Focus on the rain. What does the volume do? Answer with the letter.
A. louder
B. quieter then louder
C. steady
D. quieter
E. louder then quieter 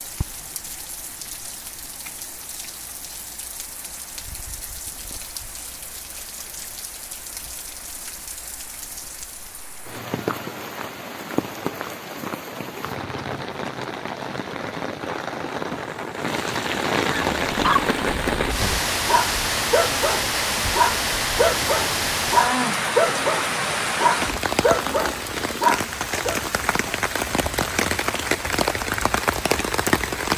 A.